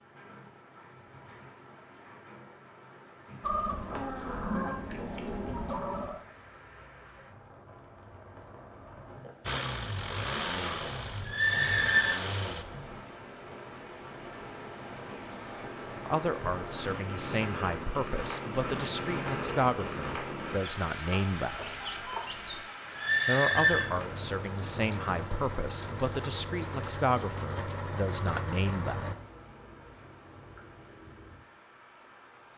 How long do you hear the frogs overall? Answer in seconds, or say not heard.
not heard.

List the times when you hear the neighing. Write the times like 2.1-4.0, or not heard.
11.2-12.2, 22.9-23.9.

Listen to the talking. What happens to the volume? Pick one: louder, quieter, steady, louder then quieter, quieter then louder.
steady.